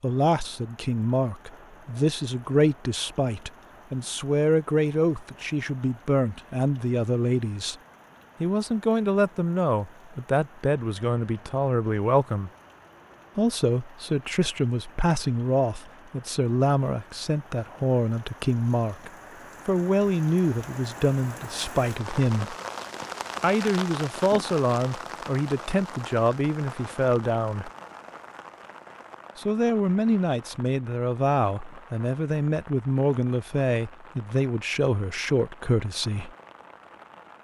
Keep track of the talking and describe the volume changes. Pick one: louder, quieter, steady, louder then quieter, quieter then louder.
steady.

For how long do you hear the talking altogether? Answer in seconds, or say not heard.
32 s.